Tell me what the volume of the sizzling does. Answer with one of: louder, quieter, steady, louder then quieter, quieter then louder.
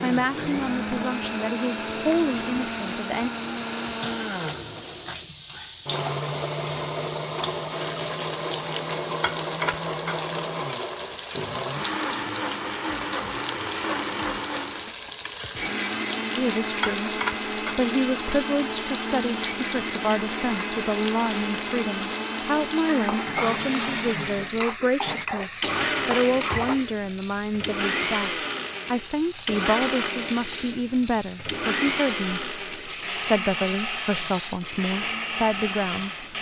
steady.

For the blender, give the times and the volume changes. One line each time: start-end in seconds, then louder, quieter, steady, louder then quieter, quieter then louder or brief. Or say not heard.
0.0-36.3 steady.